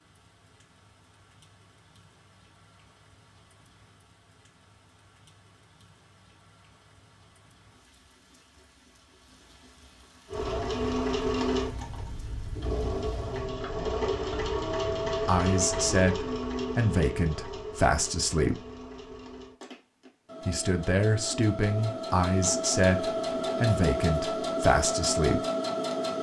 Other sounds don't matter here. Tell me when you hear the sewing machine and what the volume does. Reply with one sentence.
You can hear the sewing machine from 10.2 to 26.1 s, getting quieter then louder.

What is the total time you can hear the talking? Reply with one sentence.
You can hear the talking for 8 seconds altogether.